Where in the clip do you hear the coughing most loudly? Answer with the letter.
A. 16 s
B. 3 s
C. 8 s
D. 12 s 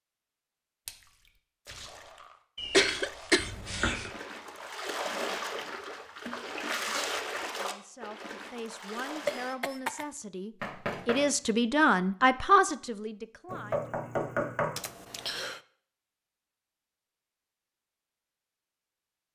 B.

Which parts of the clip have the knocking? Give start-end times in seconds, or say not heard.
3.4-4.1, 10.6-11.3, 13.5-14.8.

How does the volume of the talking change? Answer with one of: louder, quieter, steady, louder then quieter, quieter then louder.
louder.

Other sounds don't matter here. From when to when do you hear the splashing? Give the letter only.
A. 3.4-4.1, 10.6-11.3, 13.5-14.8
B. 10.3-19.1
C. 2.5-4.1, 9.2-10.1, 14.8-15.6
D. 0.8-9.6
D.